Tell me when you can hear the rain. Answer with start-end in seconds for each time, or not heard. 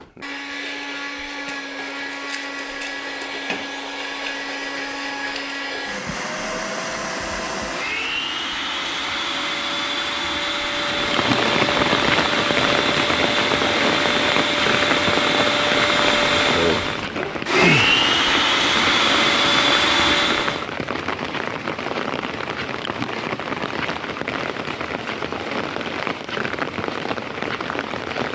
10.8-28.3.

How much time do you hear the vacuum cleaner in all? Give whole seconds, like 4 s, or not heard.
21 s.